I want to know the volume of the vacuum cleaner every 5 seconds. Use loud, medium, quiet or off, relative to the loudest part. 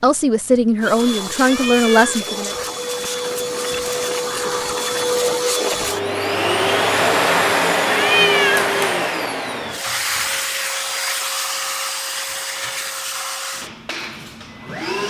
medium, loud, medium.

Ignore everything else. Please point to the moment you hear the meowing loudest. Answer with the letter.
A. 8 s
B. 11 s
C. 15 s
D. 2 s
A.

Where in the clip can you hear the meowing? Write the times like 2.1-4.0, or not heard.
1.4-2.2, 7.9-8.7.